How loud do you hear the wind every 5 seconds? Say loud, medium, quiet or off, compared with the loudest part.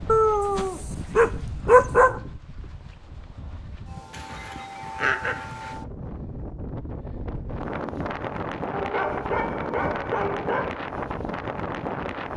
medium, loud, loud.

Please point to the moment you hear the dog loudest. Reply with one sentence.
The loudest moment of the dog is at 2 seconds.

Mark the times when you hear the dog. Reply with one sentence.
You can hear the dog from 0.1 to 2.1 s, from 4.1 to 5.8 s and from 8.7 to 10.7 s.